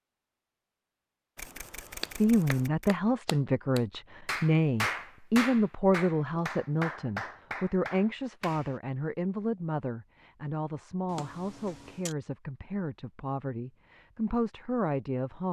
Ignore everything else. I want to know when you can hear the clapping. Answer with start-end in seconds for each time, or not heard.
2.0-8.8.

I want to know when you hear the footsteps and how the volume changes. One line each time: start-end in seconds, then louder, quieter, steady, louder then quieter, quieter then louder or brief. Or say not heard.
not heard.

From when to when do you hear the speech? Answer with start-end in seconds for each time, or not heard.
2.2-15.4.